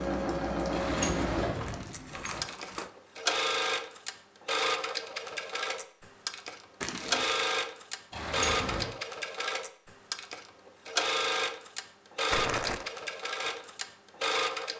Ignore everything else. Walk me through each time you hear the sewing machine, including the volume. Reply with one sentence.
The sewing machine can be heard from 0.0 to 14.7 s, at a steady volume.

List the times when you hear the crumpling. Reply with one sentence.
The crumpling can be heard from 1.6 to 2.9 s, from 6.8 to 7.5 s and from 12.3 to 12.9 s.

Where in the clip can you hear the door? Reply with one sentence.
You can hear the door from 0.7 to 2.5 s and from 8.1 to 8.9 s.